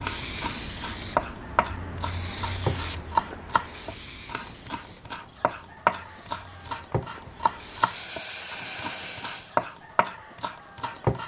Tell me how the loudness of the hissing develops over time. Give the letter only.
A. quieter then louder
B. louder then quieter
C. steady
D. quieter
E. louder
A.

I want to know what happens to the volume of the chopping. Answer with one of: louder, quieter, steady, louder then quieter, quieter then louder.
steady.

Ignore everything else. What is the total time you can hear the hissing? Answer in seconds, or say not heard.
10 s.